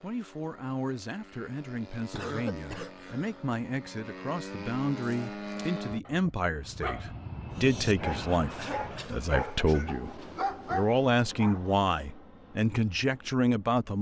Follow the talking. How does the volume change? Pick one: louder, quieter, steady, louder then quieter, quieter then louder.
louder.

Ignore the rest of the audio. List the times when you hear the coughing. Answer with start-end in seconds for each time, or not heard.
2.1-3.5, 8.1-10.2.